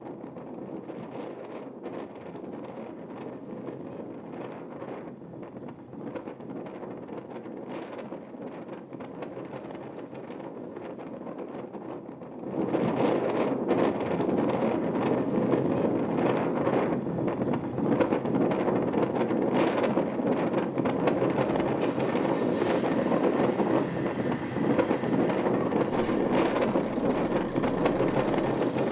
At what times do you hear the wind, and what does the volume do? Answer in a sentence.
You can hear the wind from 0.0 to 28.8 s, getting louder.